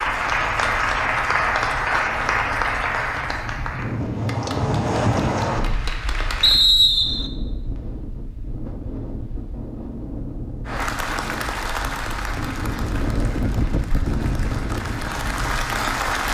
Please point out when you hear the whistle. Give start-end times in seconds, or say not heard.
6.4-7.3.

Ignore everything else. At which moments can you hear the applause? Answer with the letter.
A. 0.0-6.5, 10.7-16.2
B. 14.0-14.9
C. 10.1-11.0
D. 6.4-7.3
A.